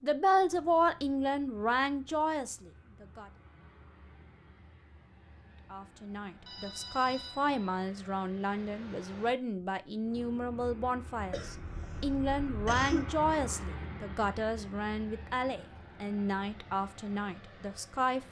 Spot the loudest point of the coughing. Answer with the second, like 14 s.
13 s.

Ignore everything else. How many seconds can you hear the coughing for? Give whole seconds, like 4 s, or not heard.
2 s.